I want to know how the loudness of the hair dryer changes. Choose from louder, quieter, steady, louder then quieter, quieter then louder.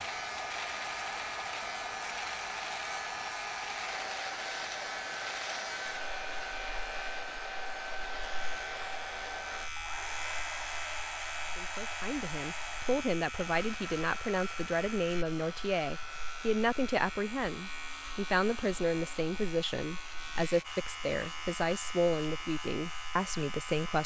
quieter.